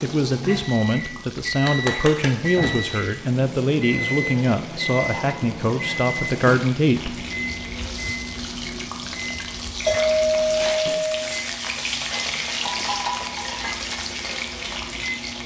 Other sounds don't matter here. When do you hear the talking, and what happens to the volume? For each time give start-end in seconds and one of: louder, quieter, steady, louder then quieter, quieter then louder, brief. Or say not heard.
0.0-7.2 steady.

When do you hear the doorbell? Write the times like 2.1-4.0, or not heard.
9.8-11.1.